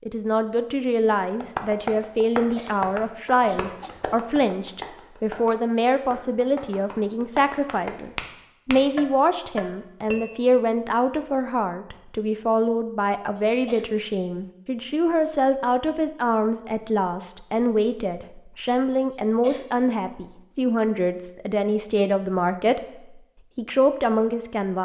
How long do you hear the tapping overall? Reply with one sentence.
You can hear the tapping for 9 seconds altogether.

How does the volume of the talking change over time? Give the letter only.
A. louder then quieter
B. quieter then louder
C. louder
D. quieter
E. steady
E.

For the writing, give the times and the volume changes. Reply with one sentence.
You can't hear the writing here.